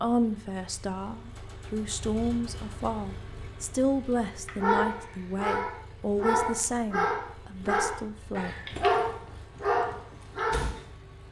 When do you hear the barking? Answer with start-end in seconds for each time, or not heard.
4.5-10.8.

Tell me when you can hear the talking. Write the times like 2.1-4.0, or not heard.
0.0-8.6.